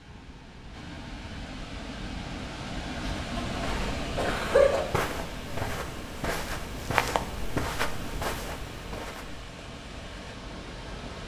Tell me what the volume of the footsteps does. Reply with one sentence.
The loudness of the footsteps goes up, then down.